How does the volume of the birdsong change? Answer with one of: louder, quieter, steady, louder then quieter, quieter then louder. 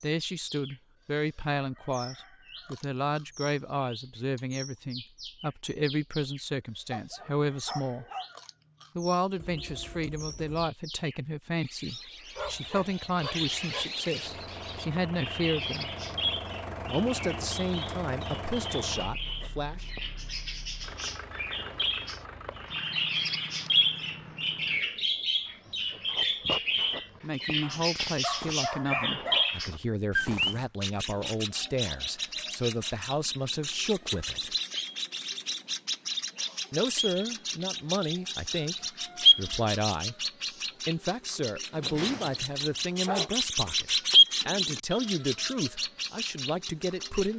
louder.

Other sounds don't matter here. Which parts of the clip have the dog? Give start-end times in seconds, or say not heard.
6.9-8.3, 12.3-13.8, 27.6-29.6, 41.8-43.3.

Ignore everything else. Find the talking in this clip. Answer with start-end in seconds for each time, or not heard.
0.0-8.1, 8.9-15.9, 16.9-19.9, 27.2-34.5, 36.7-40.1, 40.9-47.3.